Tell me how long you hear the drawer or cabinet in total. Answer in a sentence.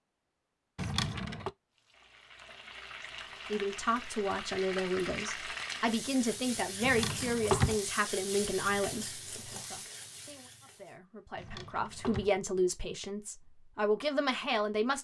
You can hear the drawer or cabinet for 3 seconds altogether.